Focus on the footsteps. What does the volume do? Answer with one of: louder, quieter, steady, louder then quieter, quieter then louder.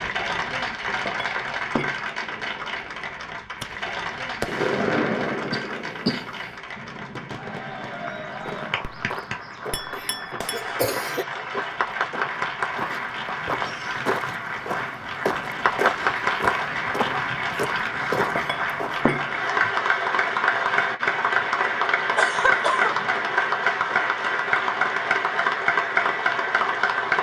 louder.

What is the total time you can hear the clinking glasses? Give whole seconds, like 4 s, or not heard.
3 s.